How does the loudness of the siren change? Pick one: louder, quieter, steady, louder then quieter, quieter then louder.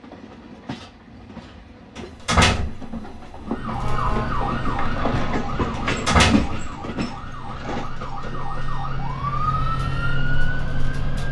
quieter then louder.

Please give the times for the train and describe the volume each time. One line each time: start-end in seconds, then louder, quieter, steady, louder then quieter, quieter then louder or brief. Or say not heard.
0.0-9.1 louder then quieter.